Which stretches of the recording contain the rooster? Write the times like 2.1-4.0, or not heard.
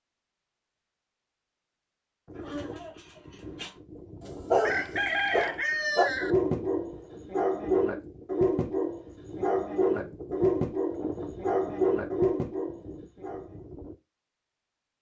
4.6-6.3.